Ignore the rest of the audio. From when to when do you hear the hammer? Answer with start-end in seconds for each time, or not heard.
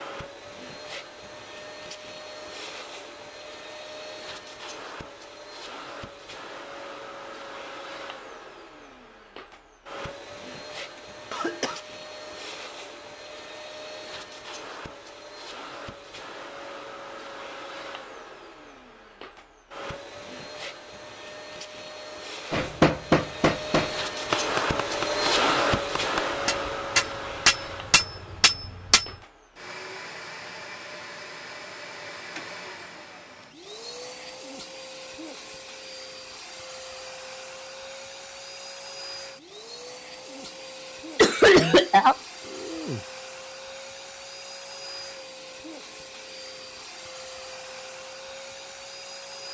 22.5-29.1.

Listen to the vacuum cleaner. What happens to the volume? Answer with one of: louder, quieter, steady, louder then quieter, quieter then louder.
louder then quieter.